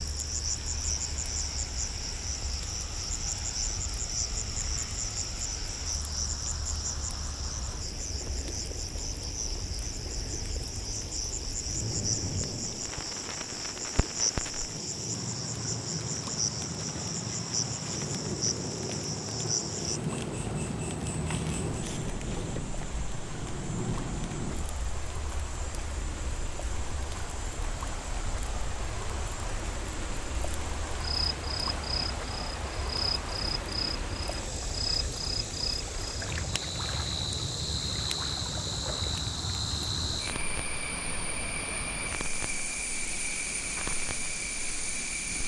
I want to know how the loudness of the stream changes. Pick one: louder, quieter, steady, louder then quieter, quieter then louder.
louder.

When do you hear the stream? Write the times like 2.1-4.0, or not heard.
0.0-45.4.